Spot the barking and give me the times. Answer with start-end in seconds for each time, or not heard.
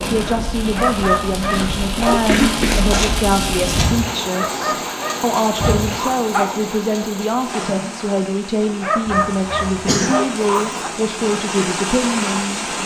0.8-2.3, 4.3-6.6, 8.8-10.8.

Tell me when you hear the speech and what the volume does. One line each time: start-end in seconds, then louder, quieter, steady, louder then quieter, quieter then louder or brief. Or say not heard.
0.1-12.7 steady.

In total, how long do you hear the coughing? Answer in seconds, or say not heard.
3 s.